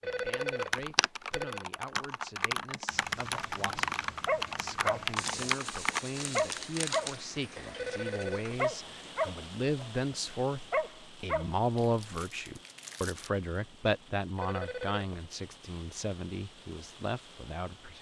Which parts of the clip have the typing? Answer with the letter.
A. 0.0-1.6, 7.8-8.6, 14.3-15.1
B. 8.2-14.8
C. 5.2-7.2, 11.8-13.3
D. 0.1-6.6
D.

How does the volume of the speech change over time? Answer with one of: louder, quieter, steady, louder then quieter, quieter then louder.
louder then quieter.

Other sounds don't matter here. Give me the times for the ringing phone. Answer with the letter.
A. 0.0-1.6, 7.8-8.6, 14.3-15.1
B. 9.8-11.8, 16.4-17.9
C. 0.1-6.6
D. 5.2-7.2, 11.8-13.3
A.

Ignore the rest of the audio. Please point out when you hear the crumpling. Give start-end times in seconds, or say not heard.
5.2-7.2, 11.8-13.3.